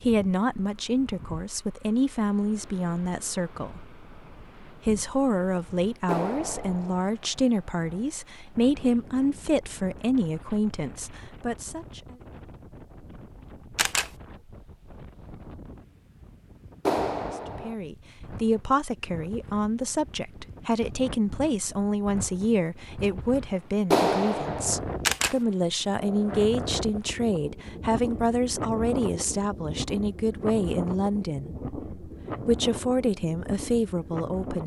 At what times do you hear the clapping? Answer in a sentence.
The clapping can be heard from 6.0 to 7.0 s, from 16.9 to 17.8 s and from 23.9 to 24.8 s.